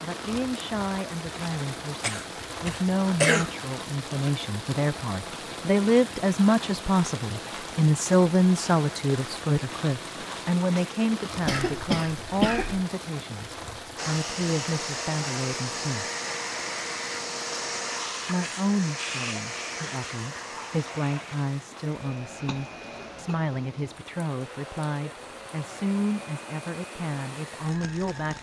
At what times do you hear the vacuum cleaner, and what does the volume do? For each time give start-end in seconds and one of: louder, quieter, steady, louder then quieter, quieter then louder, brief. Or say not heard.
13.9-28.3 quieter.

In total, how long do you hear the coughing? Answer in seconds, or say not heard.
4 s.